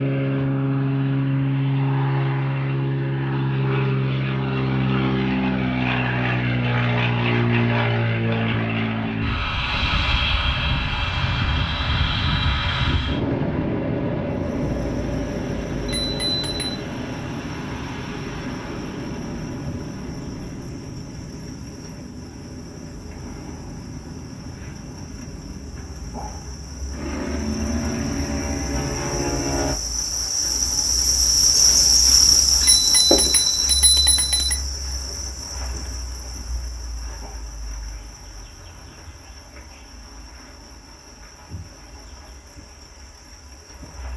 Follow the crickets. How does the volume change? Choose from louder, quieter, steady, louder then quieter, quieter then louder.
louder then quieter.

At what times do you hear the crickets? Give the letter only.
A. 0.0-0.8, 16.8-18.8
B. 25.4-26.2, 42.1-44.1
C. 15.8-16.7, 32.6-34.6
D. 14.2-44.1
D.